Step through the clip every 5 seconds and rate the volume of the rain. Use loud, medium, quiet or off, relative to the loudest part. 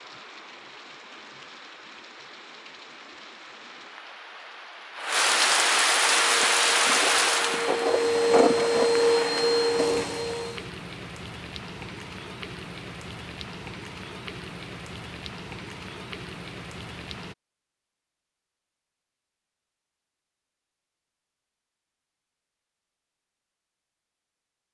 quiet, loud, quiet, quiet, off.